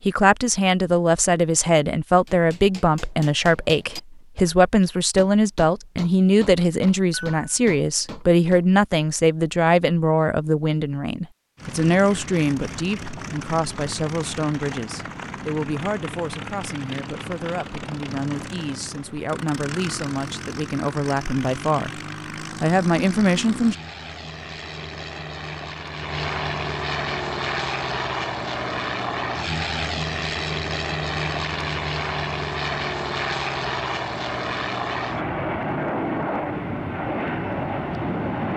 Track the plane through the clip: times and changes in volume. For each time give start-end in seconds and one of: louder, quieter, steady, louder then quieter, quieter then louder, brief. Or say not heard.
11.6-38.5 louder.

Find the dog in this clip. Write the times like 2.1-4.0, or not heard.
not heard.